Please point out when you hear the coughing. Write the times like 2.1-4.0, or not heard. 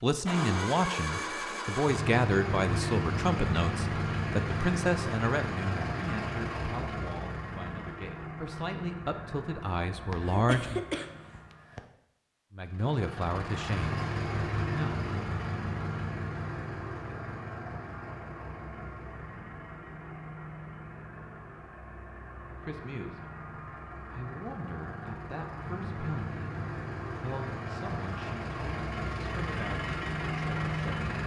10.1-11.8.